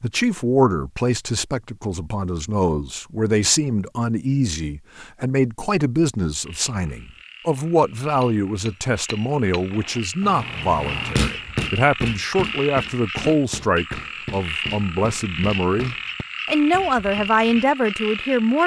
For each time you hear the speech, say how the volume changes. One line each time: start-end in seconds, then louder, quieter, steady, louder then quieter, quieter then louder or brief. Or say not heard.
0.0-18.6 steady.